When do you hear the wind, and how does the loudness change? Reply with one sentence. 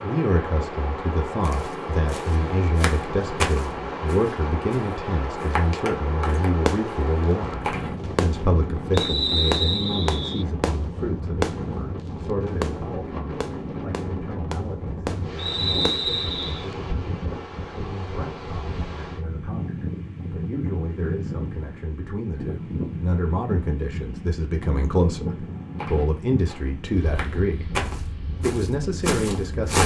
The wind can be heard from 0.0 to 29.8 s, at a steady volume.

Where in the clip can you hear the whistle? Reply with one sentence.
The whistle can be heard from 8.9 to 10.4 s and from 15.3 to 16.7 s.